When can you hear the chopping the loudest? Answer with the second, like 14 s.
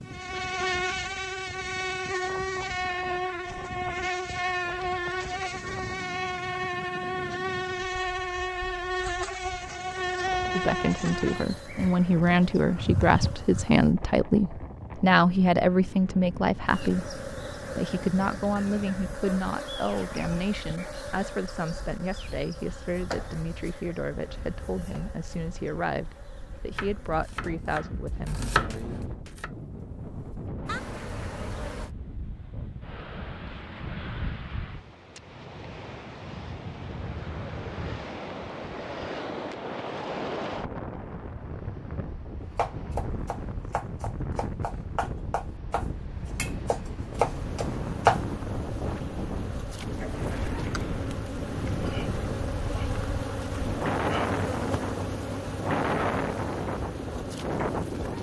48 s.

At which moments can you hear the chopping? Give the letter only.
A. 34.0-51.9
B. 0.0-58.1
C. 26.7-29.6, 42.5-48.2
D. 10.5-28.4
C.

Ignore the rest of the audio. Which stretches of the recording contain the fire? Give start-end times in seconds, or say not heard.
not heard.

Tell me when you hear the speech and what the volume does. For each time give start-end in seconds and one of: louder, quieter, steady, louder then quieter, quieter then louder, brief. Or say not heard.
10.5-28.4 quieter.